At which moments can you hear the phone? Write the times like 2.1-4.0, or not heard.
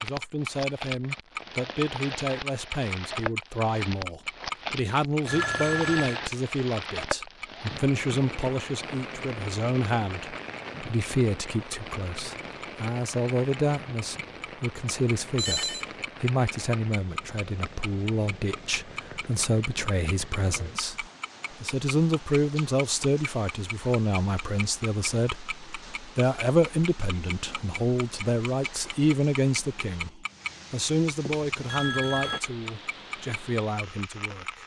5.2-6.2, 15.3-16.0, 31.2-32.4.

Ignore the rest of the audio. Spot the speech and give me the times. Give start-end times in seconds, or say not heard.
0.0-34.6.